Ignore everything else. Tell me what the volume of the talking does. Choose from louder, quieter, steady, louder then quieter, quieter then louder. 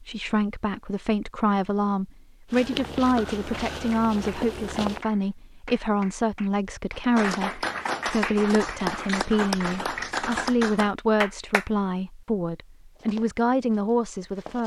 steady.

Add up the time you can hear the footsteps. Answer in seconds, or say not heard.
4 s.